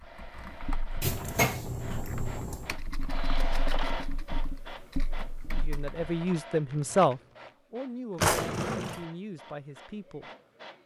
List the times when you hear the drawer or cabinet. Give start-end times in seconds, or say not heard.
1.0-2.7, 8.2-9.0.